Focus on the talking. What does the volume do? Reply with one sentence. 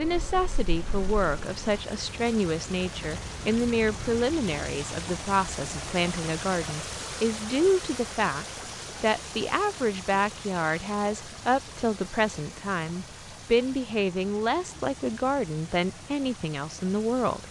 The loudness of the talking stays about the same.